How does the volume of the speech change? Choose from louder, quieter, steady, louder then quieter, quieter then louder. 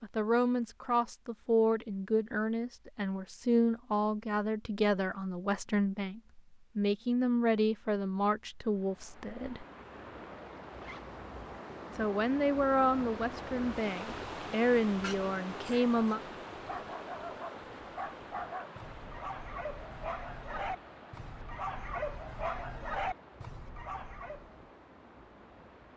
steady.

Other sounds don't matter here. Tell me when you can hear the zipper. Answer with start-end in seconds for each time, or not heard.
10.7-11.2.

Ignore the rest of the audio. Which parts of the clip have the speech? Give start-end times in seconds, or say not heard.
0.0-9.7, 11.9-16.2.